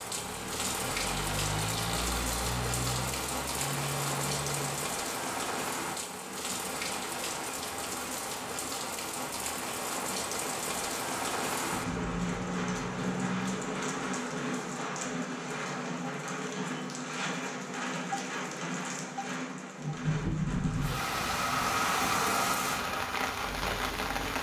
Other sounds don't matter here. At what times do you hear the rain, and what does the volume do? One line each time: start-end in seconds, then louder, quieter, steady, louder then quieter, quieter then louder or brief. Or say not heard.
0.0-24.3 steady.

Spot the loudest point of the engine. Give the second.
22 s.